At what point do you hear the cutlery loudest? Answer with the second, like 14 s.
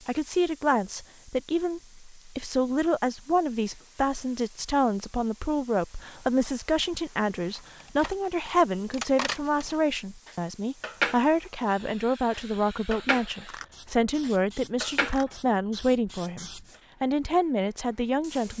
11 s.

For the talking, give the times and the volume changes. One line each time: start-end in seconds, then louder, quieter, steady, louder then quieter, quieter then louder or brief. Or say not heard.
0.1-18.5 steady.